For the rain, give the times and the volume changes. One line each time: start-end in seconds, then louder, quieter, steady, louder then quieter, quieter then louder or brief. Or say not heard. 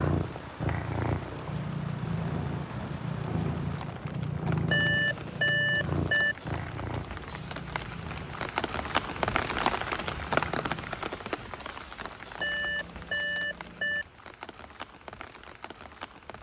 0.0-16.3 louder then quieter.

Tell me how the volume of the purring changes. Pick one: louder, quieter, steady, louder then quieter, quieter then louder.
quieter.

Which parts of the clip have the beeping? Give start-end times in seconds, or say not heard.
4.7-6.3, 12.3-14.1.